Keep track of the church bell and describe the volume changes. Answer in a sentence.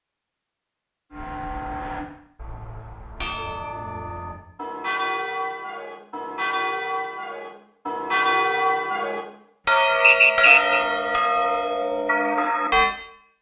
The loudness of the church bell goes up.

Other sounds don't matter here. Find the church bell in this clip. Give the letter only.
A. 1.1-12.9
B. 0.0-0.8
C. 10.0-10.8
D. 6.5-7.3
A.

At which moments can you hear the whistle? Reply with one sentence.
You can hear the whistle from 10.0 to 10.8 s.